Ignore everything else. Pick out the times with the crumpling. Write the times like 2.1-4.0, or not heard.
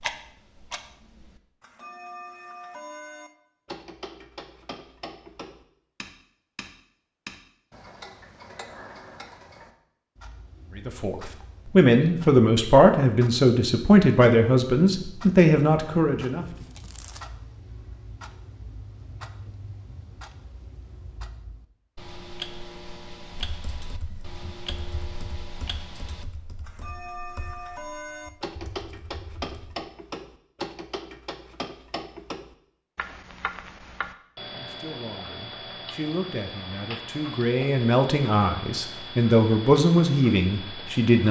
16.4-17.2.